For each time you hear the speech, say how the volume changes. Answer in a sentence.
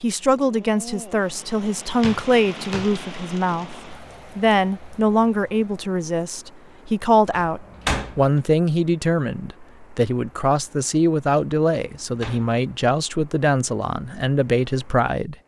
The speech can be heard from 0.0 to 15.3 s, at a steady volume.